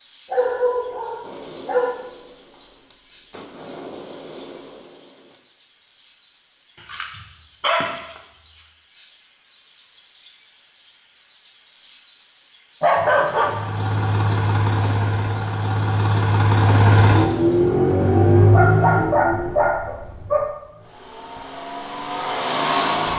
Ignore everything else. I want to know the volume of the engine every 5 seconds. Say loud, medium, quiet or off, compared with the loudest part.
off, off, medium, loud, medium.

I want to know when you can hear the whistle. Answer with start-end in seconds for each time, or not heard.
not heard.